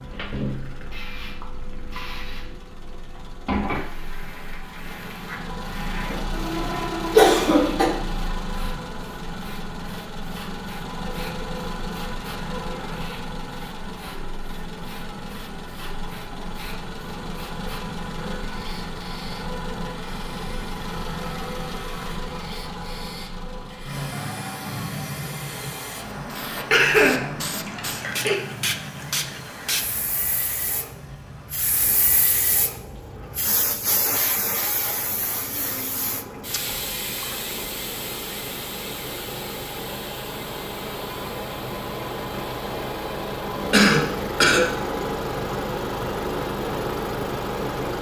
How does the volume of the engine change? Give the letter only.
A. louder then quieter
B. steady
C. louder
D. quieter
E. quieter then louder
E.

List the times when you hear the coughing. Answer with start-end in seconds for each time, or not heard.
6.1-7.9, 26.7-28.4, 43.7-44.6.